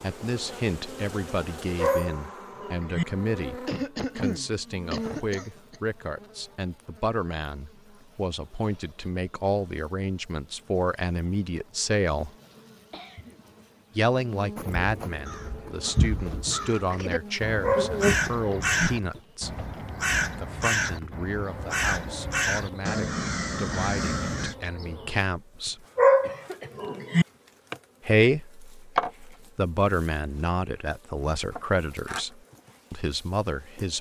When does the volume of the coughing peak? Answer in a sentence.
The volume of the coughing peaks at 4 seconds.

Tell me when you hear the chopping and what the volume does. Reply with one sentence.
You can't hear the chopping here.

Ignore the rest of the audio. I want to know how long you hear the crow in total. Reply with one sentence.
The crow can be heard for 10 seconds in total.